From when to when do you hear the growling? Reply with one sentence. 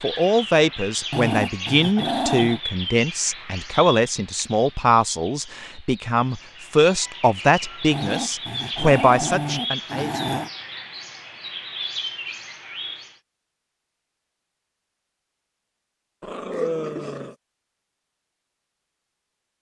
The growling can be heard from 1.1 to 2.6 s, from 7.9 to 10.5 s and from 16.2 to 17.4 s.